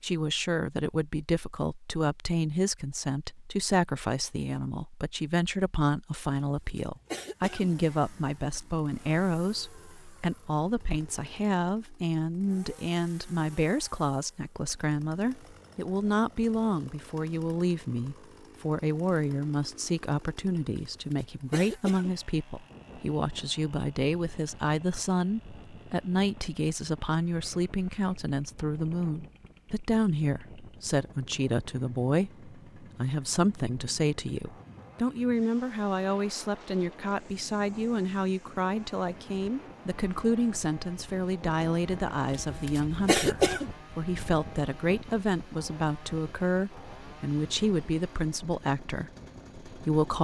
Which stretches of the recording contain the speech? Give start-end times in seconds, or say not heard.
0.0-50.1.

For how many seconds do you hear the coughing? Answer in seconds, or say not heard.
4 s.